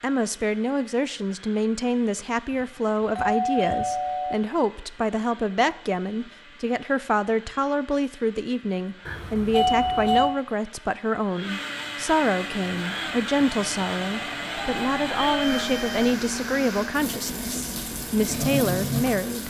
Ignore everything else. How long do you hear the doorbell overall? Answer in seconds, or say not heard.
5 s.